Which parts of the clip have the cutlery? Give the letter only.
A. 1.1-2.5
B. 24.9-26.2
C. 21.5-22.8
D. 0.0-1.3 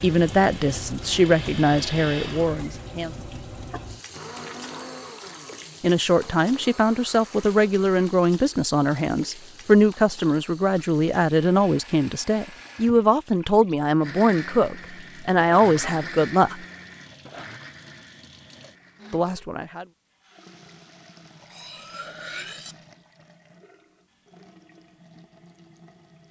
C.